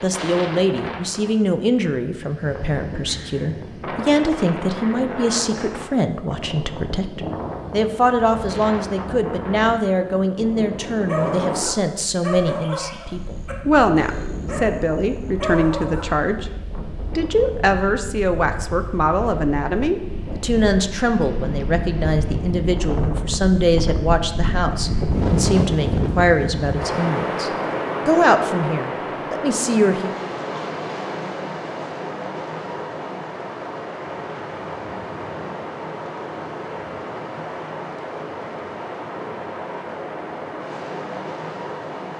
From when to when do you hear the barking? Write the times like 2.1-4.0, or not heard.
11.1-14.7, 15.4-16.1.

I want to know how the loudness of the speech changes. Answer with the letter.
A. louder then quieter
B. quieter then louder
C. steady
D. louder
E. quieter
C.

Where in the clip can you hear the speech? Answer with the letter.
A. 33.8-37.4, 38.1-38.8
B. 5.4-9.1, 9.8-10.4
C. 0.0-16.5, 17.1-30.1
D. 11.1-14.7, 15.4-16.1
C.